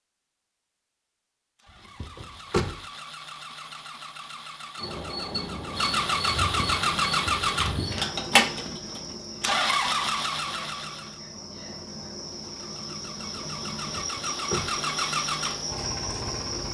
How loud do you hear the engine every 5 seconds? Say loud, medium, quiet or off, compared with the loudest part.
quiet, loud, medium, medium.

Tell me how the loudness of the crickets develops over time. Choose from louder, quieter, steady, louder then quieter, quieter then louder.
quieter then louder.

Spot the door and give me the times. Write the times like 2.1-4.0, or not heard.
2.0-2.8, 13.9-14.7.